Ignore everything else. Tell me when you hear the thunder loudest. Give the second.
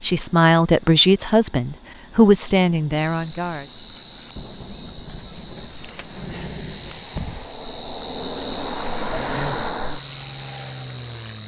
6 s.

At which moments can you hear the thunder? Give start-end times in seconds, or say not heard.
4.3-7.2.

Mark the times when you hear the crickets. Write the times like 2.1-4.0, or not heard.
3.0-11.4.